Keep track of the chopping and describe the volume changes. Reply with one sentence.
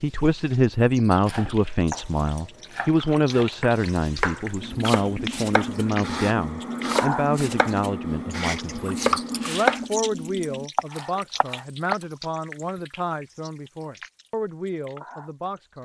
The loudness of the chopping goes up.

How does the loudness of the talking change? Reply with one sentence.
The loudness of the talking goes down.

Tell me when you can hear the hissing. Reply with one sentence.
The hissing can be heard from 0.0 to 9.8 s.